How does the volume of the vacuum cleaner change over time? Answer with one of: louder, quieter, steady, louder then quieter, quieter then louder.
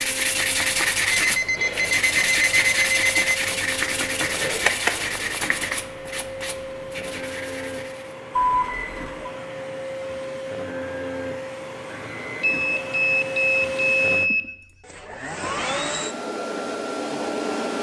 louder.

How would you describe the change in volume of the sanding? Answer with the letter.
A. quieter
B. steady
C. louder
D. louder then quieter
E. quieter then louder
A.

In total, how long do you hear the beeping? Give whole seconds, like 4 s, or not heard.
5 s.